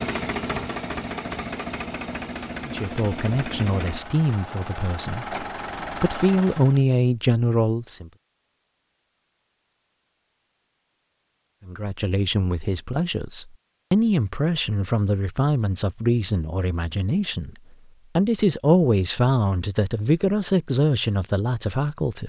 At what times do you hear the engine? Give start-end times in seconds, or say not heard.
0.0-6.8.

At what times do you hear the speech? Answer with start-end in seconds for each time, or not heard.
2.6-8.1, 11.7-17.6, 18.1-22.2.